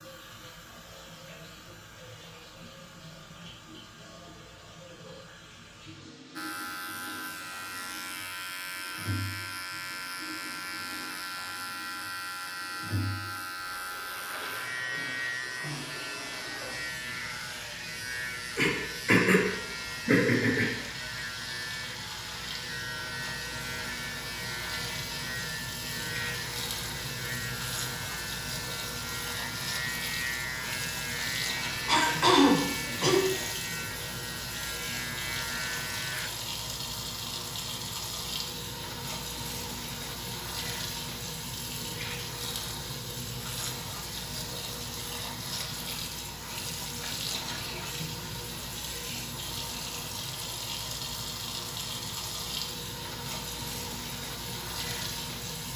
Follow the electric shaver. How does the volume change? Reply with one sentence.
The volume of the electric shaver stays about the same.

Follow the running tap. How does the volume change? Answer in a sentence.
The volume of the running tap goes up.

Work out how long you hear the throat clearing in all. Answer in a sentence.
You can hear the throat clearing for 3 seconds altogether.